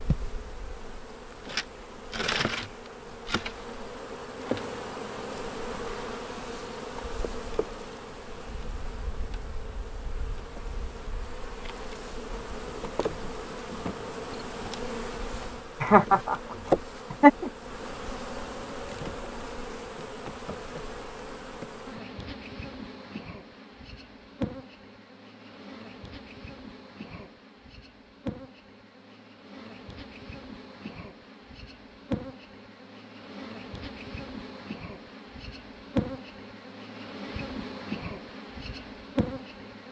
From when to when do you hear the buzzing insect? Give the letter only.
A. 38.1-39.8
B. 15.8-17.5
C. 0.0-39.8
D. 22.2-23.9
C.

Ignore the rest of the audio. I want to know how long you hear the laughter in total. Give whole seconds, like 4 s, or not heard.
2 s.